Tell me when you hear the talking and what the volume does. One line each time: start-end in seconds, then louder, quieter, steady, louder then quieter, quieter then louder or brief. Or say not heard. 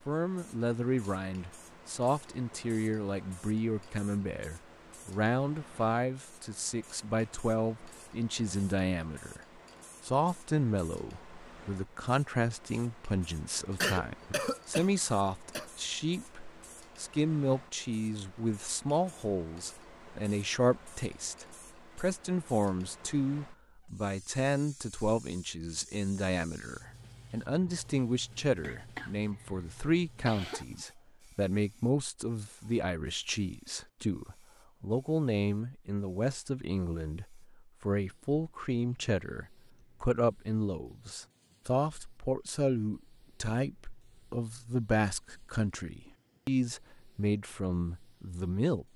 0.1-48.9 steady.